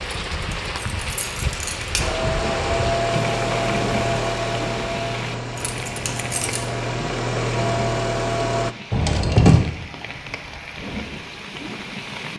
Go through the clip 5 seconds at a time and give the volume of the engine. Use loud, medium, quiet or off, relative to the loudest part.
loud, loud, off.